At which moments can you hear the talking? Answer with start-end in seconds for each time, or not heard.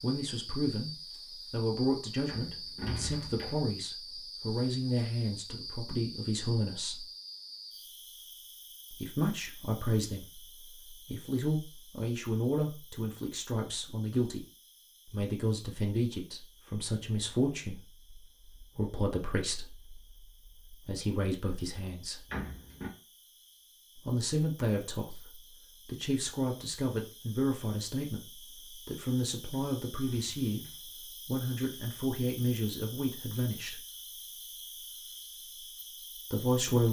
0.0-0.9, 1.5-7.0, 8.9-14.4, 15.1-22.2, 24.1-33.8, 36.3-36.8.